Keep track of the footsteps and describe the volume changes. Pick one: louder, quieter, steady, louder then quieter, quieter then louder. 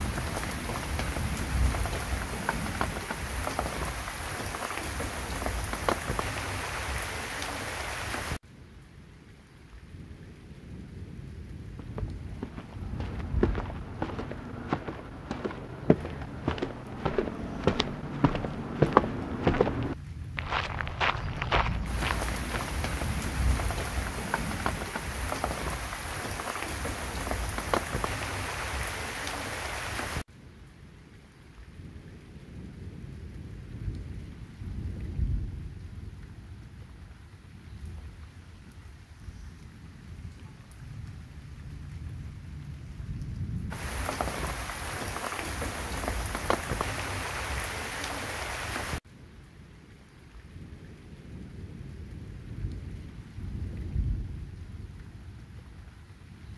louder then quieter.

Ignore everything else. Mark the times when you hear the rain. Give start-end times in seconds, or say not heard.
0.0-56.5.